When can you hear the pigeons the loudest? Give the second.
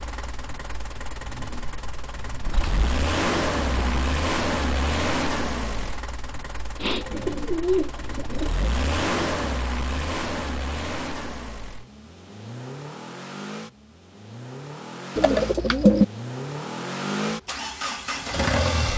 16 s.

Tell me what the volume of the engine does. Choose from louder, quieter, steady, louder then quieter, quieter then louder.
quieter then louder.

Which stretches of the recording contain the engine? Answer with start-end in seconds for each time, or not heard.
0.0-18.9.